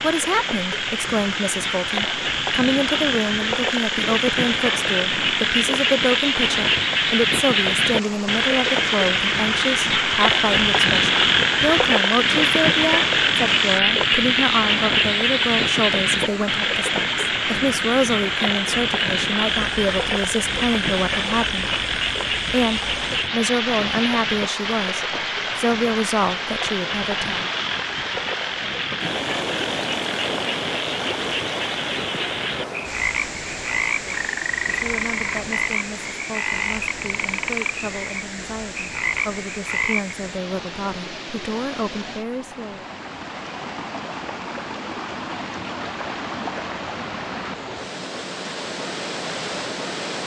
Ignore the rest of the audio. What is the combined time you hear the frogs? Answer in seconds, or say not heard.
40 s.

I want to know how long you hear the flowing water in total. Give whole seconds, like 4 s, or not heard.
50 s.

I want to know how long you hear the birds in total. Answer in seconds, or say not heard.
not heard.